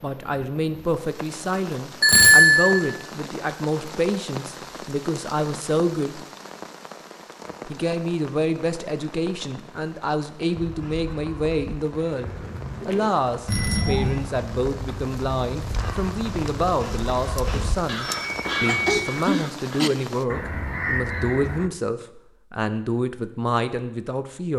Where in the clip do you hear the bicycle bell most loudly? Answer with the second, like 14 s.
2 s.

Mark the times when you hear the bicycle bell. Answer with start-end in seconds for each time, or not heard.
2.0-2.8, 13.4-14.2, 17.4-19.3.